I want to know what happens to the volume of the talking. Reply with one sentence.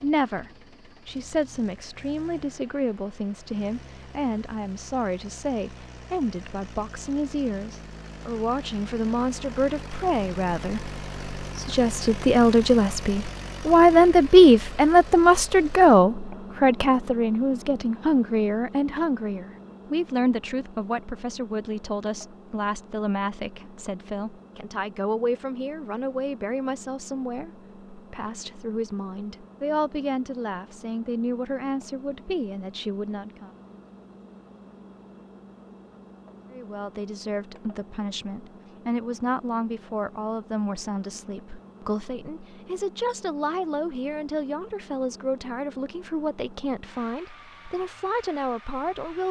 The volume of the talking goes up, then down.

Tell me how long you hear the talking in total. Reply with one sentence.
The talking can be heard for 46 seconds in total.